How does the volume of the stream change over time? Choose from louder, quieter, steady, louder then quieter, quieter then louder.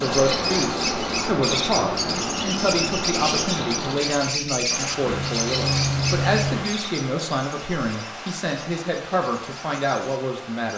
quieter.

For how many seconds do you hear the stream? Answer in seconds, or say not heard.
11 s.